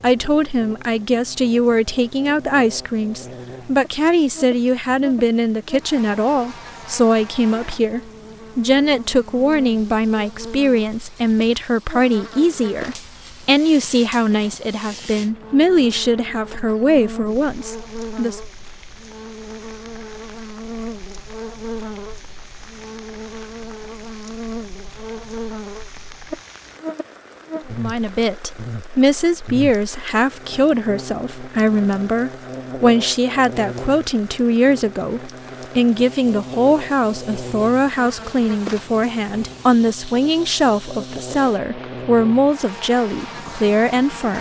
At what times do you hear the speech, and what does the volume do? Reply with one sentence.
The speech can be heard from 0.0 to 18.4 s, at a steady volume; and from 27.8 to 44.3 s, at a steady volume.